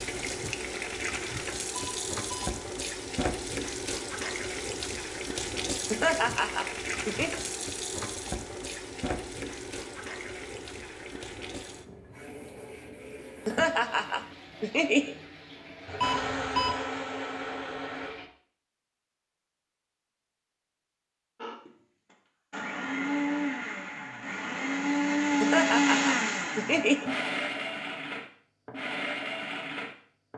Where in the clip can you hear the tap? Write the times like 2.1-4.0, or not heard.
0.0-18.3.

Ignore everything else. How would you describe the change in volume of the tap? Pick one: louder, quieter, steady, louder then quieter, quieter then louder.
quieter.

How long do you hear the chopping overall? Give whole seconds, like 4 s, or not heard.
not heard.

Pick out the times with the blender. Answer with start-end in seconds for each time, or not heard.
15.8-18.1, 21.4-30.3.